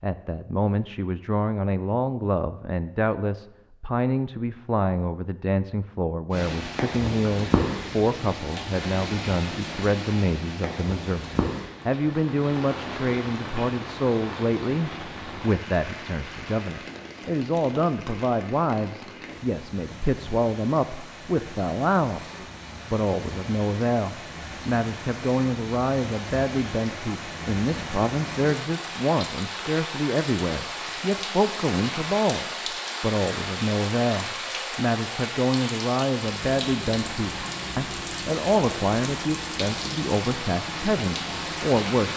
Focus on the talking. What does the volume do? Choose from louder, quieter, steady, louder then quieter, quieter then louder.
steady.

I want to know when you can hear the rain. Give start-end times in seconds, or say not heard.
6.3-42.1.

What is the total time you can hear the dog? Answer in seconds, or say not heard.
not heard.